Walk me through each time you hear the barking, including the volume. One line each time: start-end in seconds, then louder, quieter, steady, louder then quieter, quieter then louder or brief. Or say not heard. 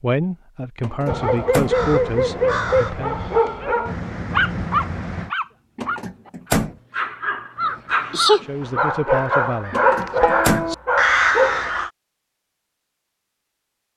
1.1-11.7 quieter then louder.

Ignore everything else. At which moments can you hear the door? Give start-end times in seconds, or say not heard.
0.8-1.8, 5.8-6.8, 9.7-10.7.